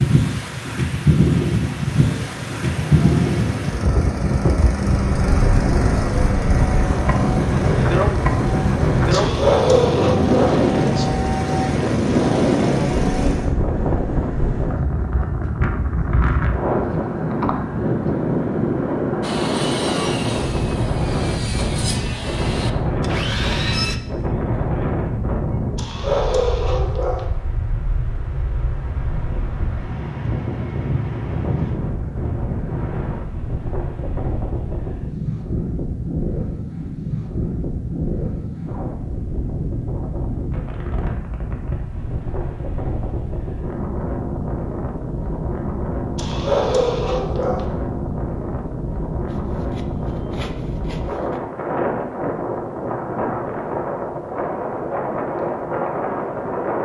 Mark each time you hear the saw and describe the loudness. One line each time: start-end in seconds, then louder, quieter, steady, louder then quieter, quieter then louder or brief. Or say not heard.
19.2-24.0 quieter then louder
49.2-51.4 brief.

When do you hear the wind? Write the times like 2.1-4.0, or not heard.
0.0-56.7.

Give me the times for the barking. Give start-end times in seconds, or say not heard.
9.1-10.6, 25.8-27.2, 46.1-47.6.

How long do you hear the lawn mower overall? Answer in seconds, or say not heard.
12 s.